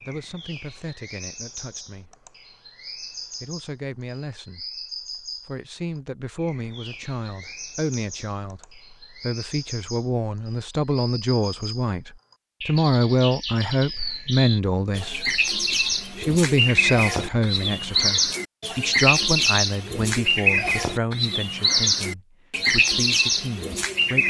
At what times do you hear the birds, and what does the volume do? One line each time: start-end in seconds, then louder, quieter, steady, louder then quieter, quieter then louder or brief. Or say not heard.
0.0-24.2 louder.